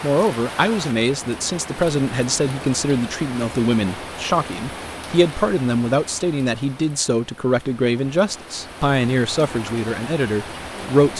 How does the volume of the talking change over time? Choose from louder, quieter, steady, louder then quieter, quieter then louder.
steady.